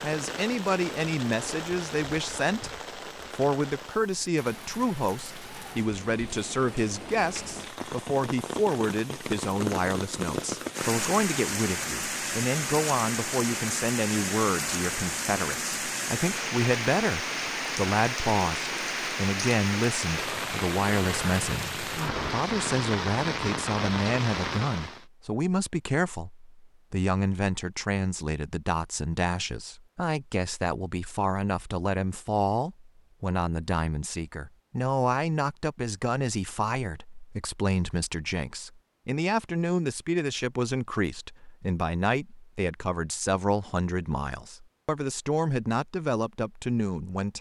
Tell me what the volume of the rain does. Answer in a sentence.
The loudness of the rain goes up.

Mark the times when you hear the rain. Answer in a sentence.
You can hear the rain from 0.0 to 25.1 s.